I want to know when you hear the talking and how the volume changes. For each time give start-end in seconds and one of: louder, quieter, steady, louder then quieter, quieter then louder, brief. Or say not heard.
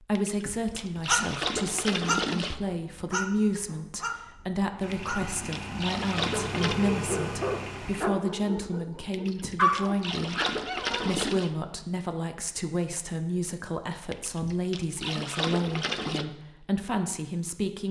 0.0-17.8 steady.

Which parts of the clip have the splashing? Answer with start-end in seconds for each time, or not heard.
0.1-2.5, 4.9-6.8, 9.1-11.5, 14.1-16.2.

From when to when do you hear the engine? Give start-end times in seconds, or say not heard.
4.8-8.1.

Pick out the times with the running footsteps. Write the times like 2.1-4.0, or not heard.
not heard.